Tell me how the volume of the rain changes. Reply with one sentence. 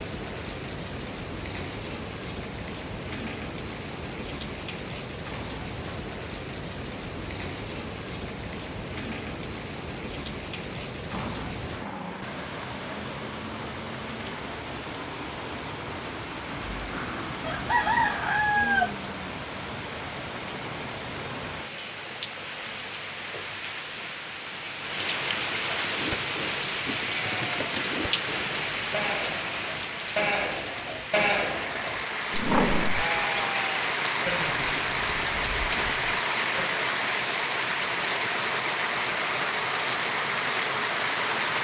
The loudness of the rain goes up.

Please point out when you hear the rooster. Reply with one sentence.
You can hear the rooster from 17.4 to 18.9 s.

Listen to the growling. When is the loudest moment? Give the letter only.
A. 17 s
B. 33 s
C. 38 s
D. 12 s
B.